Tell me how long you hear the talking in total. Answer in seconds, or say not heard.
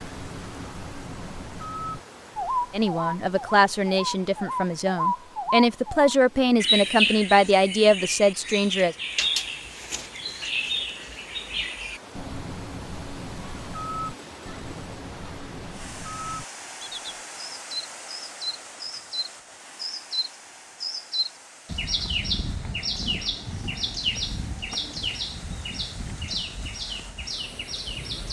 6 s.